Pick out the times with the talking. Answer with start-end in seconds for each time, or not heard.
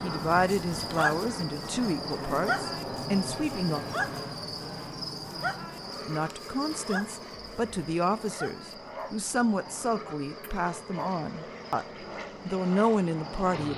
0.0-3.9, 6.0-11.8, 12.4-13.7.